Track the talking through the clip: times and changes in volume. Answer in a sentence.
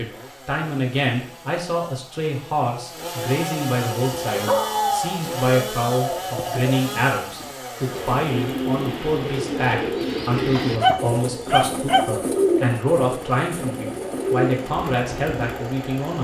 The talking can be heard from 0.0 to 16.2 s, at a steady volume.